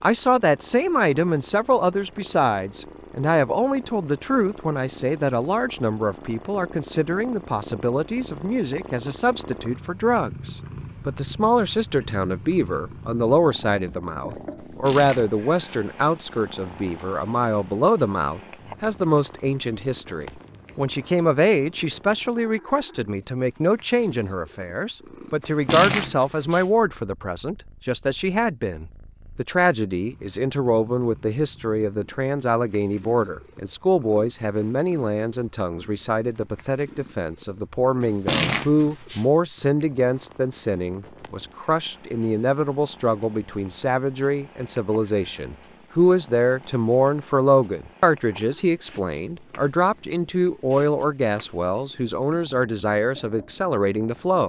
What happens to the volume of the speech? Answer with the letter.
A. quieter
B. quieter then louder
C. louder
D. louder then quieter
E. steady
E.